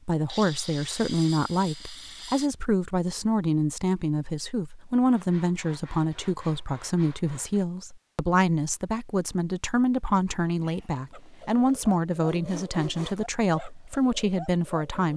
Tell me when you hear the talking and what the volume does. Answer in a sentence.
You can hear the talking from 0.1 to 15.1 s, at a steady volume.